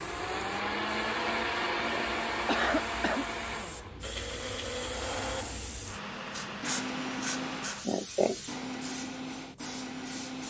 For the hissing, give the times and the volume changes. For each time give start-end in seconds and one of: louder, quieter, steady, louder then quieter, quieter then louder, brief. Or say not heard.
0.0-10.4 louder then quieter.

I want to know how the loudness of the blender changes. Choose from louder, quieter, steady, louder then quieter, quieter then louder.
quieter.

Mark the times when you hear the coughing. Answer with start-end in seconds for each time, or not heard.
1.6-3.2, 7.8-8.3.